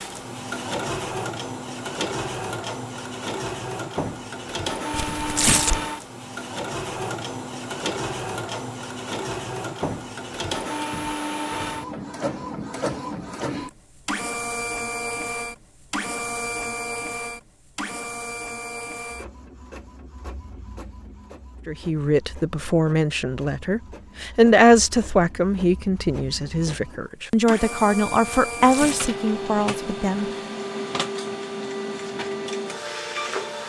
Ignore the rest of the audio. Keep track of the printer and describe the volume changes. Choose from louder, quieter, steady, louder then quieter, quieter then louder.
quieter then louder.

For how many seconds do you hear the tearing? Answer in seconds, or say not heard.
2 s.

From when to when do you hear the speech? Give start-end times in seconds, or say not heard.
21.6-30.2.